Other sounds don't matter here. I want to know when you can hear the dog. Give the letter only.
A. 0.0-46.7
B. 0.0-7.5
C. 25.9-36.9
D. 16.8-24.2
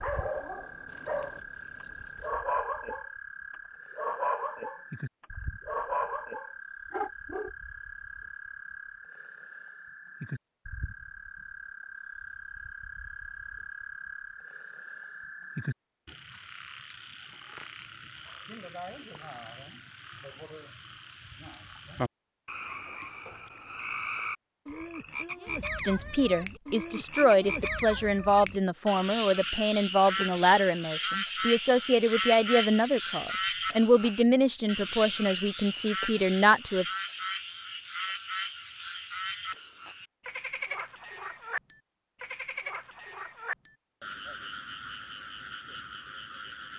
B.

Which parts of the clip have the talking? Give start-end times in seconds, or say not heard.
25.9-36.9.